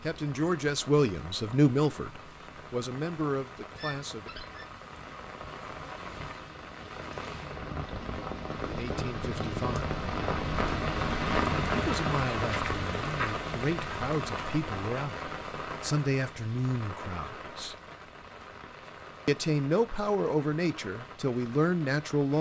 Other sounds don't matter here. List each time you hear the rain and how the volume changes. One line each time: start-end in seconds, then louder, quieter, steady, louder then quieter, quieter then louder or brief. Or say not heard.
0.0-22.3 louder then quieter.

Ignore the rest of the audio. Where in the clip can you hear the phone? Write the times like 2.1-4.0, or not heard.
3.8-4.8.